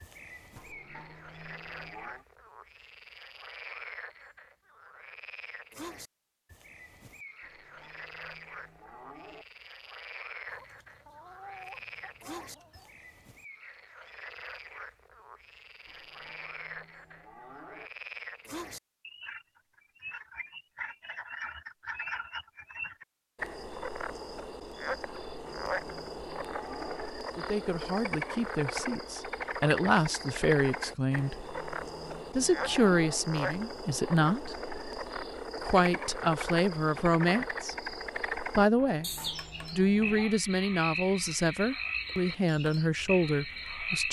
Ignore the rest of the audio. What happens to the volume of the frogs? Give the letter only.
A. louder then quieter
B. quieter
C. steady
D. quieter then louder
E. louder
E.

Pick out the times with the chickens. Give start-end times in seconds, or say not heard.
10.4-13.0.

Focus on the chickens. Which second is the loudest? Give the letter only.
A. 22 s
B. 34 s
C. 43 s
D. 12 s
D.